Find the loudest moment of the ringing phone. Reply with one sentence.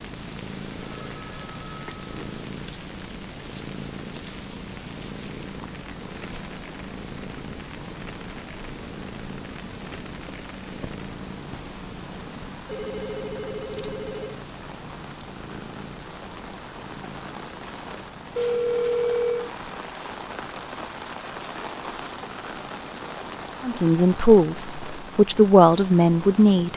The volume of the ringing phone peaks at 19 seconds.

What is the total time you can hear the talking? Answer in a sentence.
You can hear the talking for 3 seconds altogether.